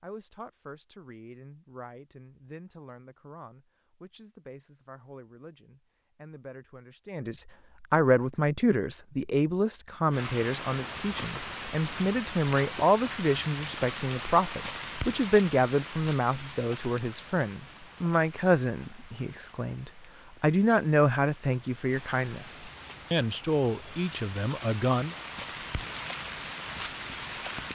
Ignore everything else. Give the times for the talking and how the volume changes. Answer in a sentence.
You can hear the talking from 0.0 to 25.1 s, getting louder.